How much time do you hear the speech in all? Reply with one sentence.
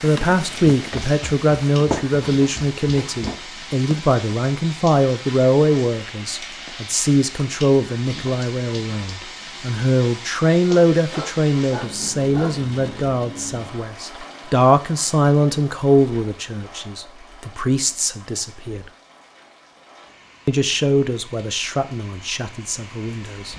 You can hear the speech for 22 seconds altogether.